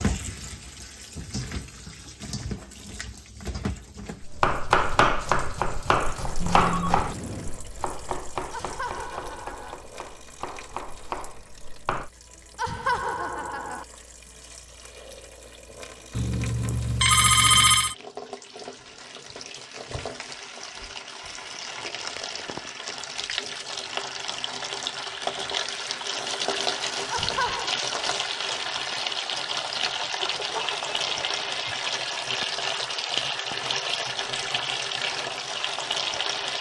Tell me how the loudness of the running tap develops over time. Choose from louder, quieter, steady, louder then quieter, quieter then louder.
quieter then louder.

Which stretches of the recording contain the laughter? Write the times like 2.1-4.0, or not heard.
8.5-9.8, 12.6-13.8, 27.1-27.8.